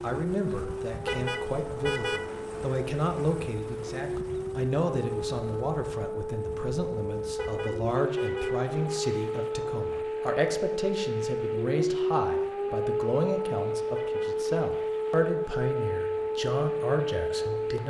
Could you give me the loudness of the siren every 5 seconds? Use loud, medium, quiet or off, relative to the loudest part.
medium, loud, loud, loud.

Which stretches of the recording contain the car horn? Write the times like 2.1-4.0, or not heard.
1.0-2.2, 7.3-8.6, 13.9-14.3.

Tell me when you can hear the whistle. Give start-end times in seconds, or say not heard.
not heard.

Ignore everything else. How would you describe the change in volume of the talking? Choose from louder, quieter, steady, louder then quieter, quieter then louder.
steady.